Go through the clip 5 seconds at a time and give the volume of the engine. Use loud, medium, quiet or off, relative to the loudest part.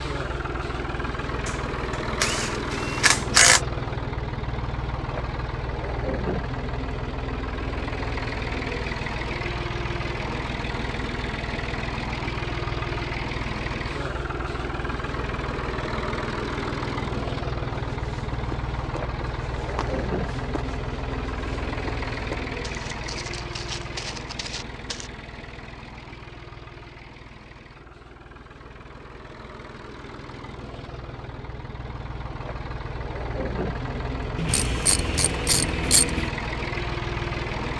loud, loud, loud, loud, loud, quiet, medium, loud.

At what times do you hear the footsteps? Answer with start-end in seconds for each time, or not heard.
17.9-25.1.